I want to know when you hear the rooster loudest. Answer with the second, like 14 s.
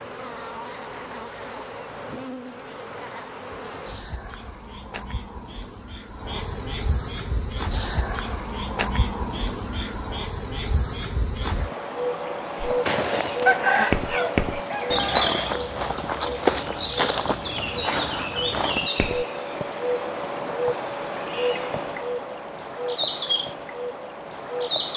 14 s.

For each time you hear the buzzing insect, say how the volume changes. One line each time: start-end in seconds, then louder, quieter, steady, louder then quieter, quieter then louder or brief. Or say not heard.
0.0-24.9 louder.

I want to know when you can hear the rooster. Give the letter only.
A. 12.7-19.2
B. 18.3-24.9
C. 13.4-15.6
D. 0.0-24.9
C.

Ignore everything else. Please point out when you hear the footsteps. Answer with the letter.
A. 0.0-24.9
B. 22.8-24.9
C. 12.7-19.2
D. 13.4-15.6
C.